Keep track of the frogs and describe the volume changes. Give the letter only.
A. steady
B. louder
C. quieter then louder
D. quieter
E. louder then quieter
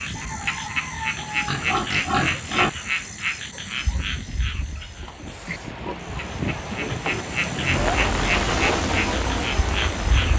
C.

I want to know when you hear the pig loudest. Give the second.
2 s.